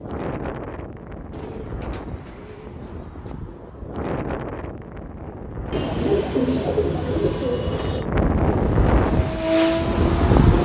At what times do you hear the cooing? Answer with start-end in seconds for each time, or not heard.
1.3-3.4, 5.7-8.1.